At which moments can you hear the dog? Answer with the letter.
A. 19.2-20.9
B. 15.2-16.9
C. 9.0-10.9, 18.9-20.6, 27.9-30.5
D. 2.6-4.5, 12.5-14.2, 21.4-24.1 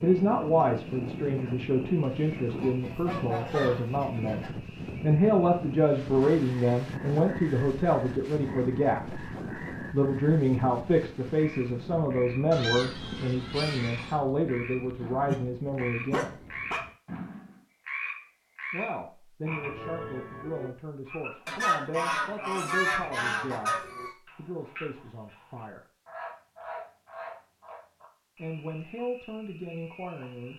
B.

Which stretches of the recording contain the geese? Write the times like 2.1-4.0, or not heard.
2.6-4.5, 12.5-14.2, 21.4-24.1.